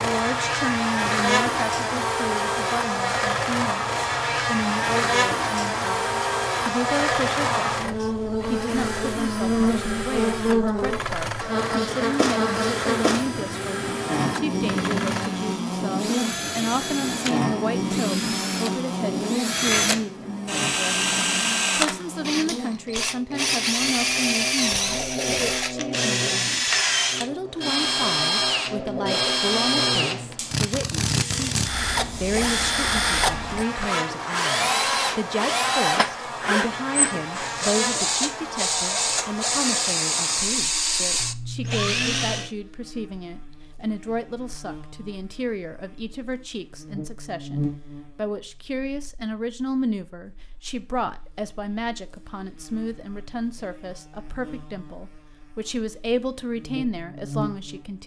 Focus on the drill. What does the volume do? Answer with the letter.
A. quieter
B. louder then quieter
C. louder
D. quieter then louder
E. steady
C.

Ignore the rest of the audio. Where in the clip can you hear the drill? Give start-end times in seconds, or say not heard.
0.0-42.5.